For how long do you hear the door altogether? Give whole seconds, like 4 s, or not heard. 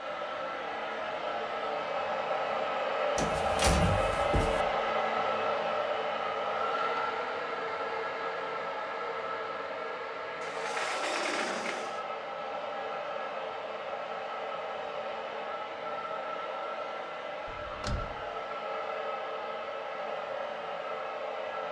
4 s.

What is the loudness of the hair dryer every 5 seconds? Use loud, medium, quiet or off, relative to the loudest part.
loud, loud, medium, medium, medium.